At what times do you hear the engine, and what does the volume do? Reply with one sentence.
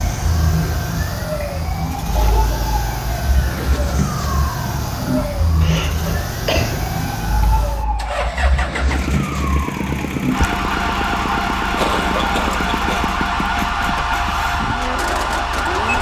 The engine can be heard from 0.0 to 15.9 s, at a steady volume.